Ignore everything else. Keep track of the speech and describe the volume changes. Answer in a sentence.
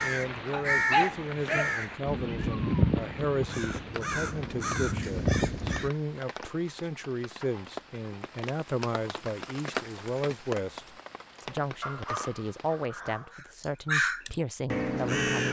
The loudness of the speech stays about the same.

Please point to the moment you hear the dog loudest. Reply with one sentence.
The loudest moment of the dog is at 1 second.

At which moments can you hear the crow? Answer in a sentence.
The crow can be heard from 0.0 to 5.9 s and from 13.3 to 15.4 s.